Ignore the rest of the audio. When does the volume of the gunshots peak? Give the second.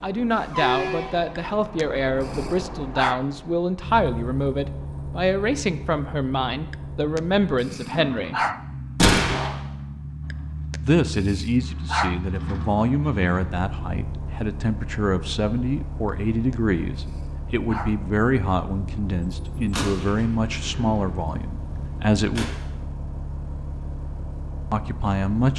9 s.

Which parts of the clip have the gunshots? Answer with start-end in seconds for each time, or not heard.
8.9-9.5, 19.3-22.5.